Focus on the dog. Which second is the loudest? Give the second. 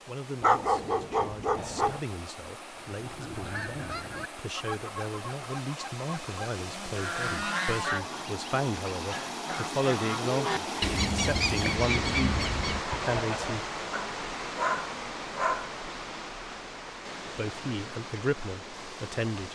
1 s.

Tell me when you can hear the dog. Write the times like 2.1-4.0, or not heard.
0.4-2.0, 13.9-15.8.